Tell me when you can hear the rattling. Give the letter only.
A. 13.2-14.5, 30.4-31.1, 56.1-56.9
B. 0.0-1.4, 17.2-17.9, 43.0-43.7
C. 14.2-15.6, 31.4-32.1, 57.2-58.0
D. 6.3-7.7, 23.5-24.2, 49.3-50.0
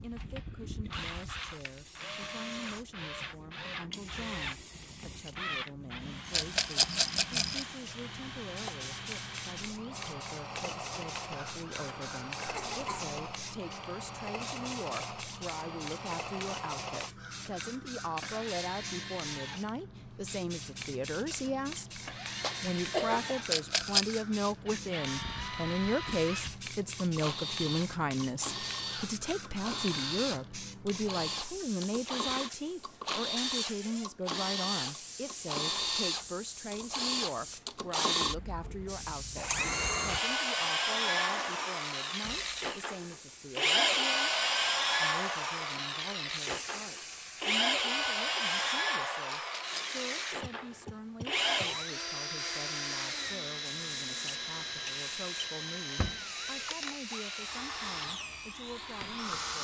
D.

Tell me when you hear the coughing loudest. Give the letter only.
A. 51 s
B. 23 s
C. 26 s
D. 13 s
B.